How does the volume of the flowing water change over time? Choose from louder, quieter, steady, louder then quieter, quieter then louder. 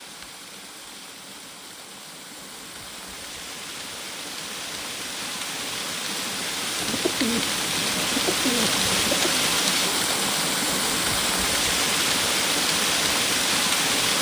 louder.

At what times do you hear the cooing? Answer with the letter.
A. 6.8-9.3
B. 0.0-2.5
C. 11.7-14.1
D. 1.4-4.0
A.